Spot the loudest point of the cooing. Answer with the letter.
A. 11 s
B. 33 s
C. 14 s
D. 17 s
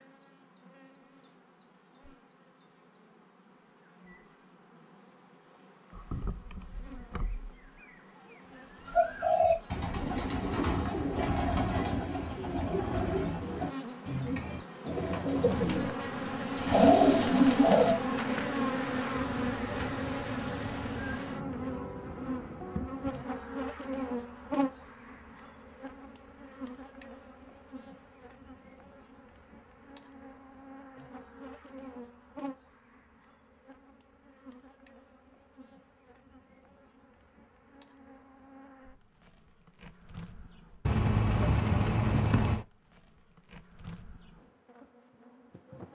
D.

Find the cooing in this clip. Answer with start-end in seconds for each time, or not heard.
8.8-17.9.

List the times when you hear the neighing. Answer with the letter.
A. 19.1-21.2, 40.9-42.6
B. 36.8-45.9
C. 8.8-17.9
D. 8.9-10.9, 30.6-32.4
A.